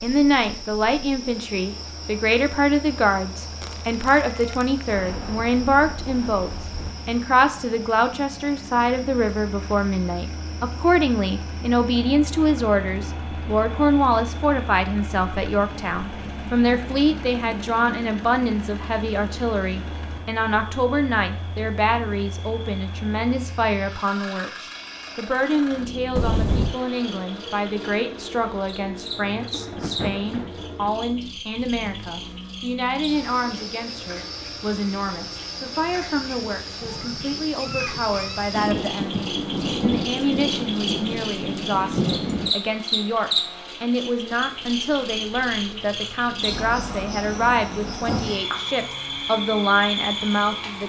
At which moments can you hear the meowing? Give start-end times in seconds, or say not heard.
3.6-4.8, 26.1-26.8, 36.8-38.5.